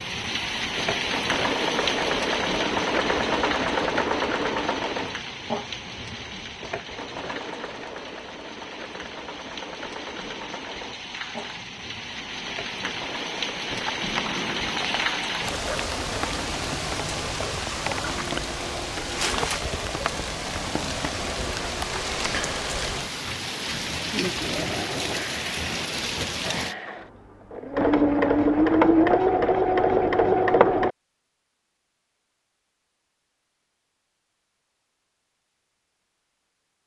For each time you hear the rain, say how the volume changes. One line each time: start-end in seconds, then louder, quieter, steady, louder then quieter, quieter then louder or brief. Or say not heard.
0.0-26.8 quieter then louder.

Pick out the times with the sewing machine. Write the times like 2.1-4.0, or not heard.
0.0-16.7, 24.3-30.9.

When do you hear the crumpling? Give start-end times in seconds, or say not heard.
13.7-15.1, 22.0-22.4.